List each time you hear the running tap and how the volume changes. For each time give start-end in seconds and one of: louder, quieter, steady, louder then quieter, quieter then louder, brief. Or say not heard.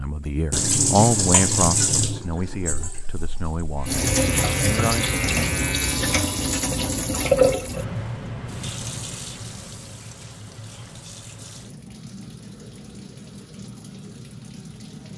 0.0-15.1 quieter.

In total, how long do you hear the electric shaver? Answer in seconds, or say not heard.
3 s.